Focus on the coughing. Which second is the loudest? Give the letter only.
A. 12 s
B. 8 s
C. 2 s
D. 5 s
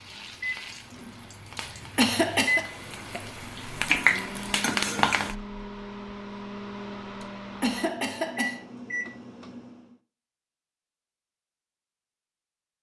C.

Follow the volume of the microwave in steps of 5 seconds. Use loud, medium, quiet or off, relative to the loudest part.
loud, loud, off.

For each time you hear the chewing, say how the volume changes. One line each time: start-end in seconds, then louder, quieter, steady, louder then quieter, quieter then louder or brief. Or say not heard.
not heard.